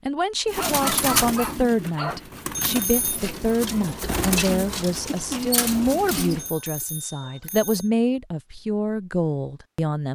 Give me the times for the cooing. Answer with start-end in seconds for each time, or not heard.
0.5-6.5.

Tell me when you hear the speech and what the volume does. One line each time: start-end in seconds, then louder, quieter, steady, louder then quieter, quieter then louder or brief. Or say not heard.
0.1-10.0 steady.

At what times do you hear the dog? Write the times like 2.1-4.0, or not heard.
0.6-2.2, 6.6-7.8.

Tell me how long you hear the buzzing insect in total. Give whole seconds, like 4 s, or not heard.
not heard.